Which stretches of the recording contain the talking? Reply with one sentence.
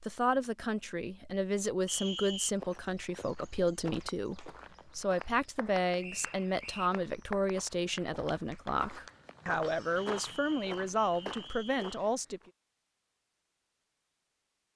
You can hear the talking from 0.0 to 12.4 s.